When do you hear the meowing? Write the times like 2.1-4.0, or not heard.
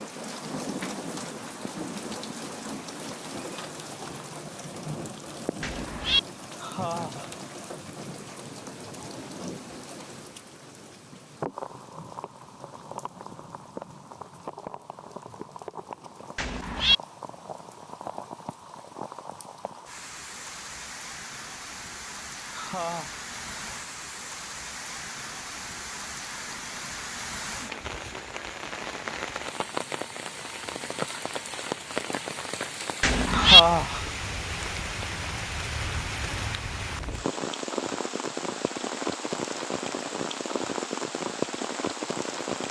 5.6-6.2, 16.4-16.9, 33.0-33.6.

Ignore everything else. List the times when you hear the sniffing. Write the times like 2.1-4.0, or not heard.
6.6-7.3, 22.6-23.1, 33.3-34.0.